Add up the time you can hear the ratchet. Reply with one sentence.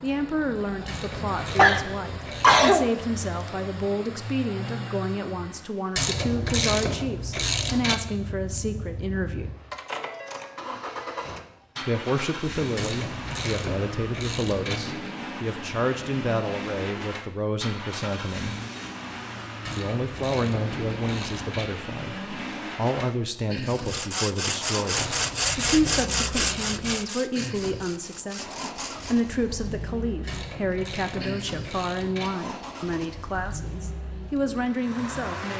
The ratchet can be heard for 12 seconds in total.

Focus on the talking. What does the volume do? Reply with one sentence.
The loudness of the talking stays about the same.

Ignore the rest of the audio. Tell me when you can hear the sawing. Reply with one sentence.
The sawing can be heard from 23.6 to 29.3 s.